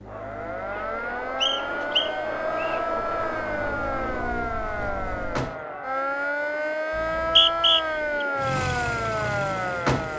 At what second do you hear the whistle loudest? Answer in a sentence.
The volume of the whistle peaks at 8 seconds.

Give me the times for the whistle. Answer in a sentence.
The whistle can be heard from 1.4 to 2.8 s and from 7.0 to 8.2 s.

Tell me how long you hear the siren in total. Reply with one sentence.
You can hear the siren for 10 seconds altogether.